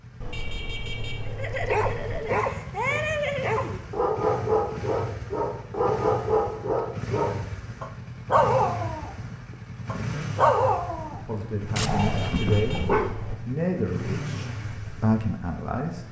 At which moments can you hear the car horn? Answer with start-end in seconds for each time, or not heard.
0.2-2.2, 11.8-13.4.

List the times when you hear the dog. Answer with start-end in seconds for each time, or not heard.
1.2-13.2.